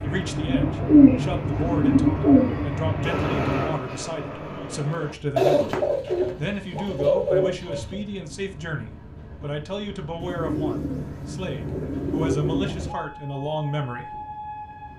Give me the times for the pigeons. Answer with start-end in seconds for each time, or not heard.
0.5-2.6, 5.3-8.0, 10.2-12.9.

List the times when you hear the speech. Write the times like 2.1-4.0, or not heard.
0.0-5.7, 6.3-14.2.